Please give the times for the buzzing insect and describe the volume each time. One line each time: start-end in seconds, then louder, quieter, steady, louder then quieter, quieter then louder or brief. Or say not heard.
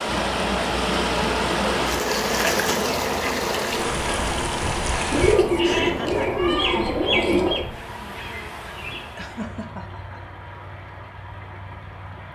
0.0-9.4 quieter.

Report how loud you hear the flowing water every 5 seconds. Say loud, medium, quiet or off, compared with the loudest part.
loud, medium, quiet.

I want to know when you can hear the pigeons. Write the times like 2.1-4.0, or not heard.
5.1-7.7.